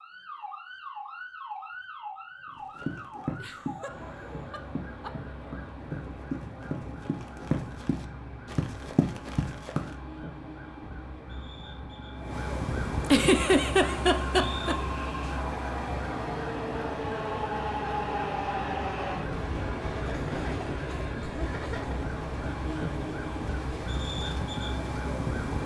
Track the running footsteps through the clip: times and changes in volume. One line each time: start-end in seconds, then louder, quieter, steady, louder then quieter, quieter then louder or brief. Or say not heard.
2.5-9.9 quieter then louder.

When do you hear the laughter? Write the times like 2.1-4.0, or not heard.
3.4-5.1, 13.1-14.8, 20.1-22.1.